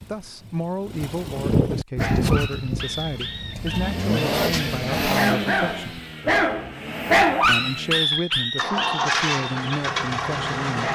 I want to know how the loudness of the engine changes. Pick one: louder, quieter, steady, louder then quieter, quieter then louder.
quieter then louder.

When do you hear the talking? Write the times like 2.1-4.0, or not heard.
0.1-6.0, 7.5-10.9.